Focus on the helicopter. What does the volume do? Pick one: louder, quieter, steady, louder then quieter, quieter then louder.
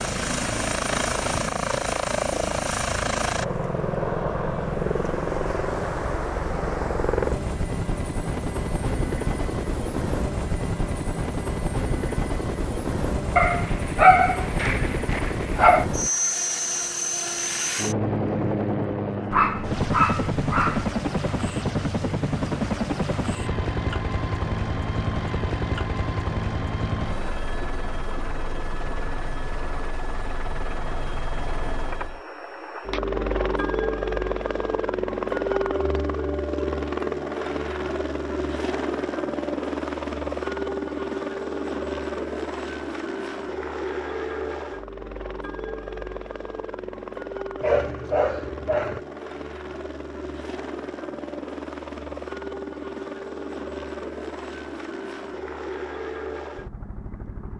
quieter.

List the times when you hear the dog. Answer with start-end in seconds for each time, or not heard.
13.3-15.8, 19.3-20.9, 47.6-49.0.